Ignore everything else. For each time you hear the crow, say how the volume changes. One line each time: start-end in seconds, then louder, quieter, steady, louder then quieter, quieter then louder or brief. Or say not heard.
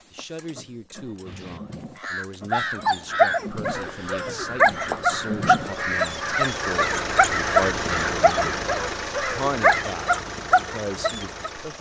1.2-9.8 steady.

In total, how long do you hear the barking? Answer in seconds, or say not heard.
9 s.